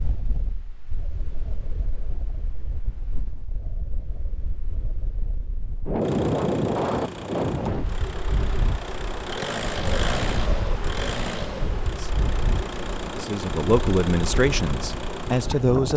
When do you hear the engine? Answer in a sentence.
You can hear the engine from 6.0 to 15.9 s.